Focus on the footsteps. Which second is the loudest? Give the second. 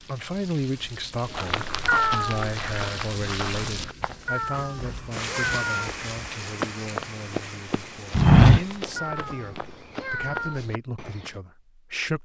8 s.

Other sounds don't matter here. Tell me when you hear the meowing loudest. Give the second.
2 s.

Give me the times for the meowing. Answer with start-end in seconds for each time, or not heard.
1.9-2.5, 4.2-5.9, 8.9-10.6.